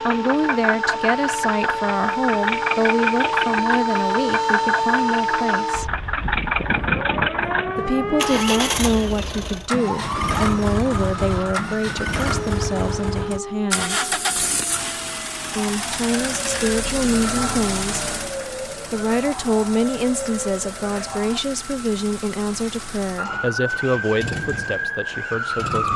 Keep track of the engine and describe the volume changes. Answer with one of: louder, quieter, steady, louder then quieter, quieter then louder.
quieter.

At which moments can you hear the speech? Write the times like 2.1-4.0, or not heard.
0.1-5.8, 7.8-14.1, 15.6-18.1, 18.9-25.9.